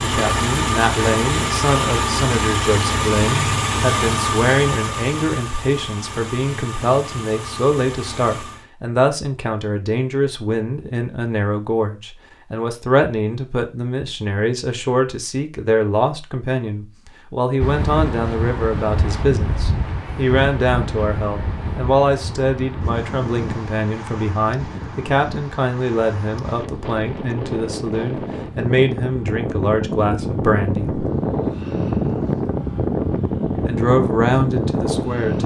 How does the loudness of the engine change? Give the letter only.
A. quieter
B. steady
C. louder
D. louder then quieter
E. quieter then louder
A.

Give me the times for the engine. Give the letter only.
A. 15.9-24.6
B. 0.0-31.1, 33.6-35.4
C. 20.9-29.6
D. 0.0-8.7
D.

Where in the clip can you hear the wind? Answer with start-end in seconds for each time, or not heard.
17.6-35.4.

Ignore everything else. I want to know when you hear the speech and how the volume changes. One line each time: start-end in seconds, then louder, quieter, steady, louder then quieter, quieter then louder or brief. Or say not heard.
0.0-31.1 steady
33.6-35.4 brief.